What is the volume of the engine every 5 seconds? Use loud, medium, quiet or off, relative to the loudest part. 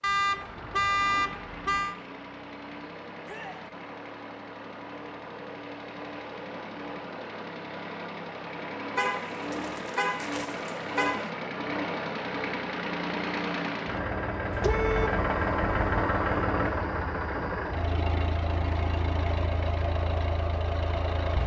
quiet, medium, loud, loud, loud.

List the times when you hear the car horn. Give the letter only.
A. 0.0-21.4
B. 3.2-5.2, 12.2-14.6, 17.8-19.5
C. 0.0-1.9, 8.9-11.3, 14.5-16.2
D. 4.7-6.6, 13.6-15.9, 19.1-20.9
C.